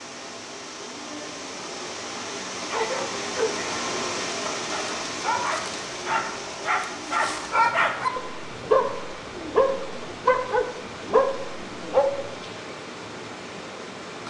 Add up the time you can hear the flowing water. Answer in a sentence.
The flowing water can be heard for 14 seconds in total.